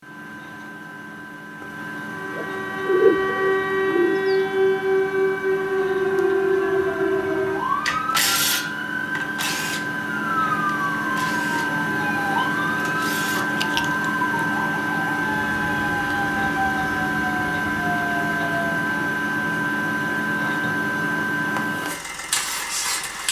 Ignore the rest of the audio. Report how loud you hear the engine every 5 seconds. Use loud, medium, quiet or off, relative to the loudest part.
medium, medium, loud, loud, loud.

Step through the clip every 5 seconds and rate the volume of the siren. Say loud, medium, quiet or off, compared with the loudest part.
loud, loud, medium, medium, off.